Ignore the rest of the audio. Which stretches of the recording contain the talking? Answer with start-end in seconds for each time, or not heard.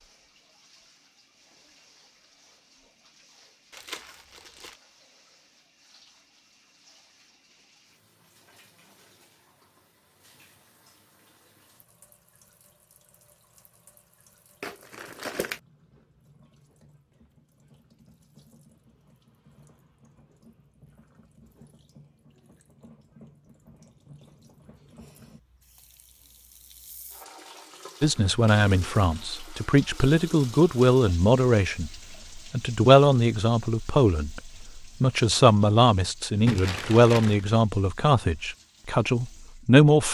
28.0-40.0.